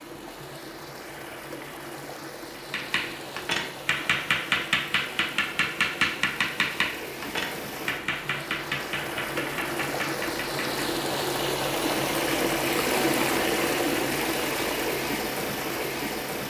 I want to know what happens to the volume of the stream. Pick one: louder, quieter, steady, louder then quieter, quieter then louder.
louder.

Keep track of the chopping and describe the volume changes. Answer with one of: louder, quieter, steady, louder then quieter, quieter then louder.
quieter.